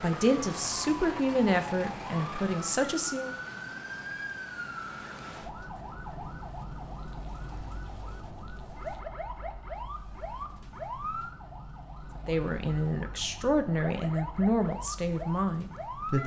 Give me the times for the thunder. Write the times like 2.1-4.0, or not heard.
5.0-9.0.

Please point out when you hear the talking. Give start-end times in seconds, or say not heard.
0.0-3.3, 12.2-16.2.